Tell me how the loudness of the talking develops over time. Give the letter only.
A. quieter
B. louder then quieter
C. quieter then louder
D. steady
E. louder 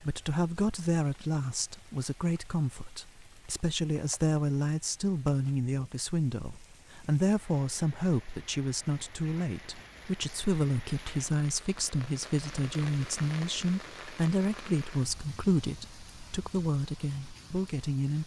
D.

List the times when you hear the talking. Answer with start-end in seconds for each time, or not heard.
0.0-18.2.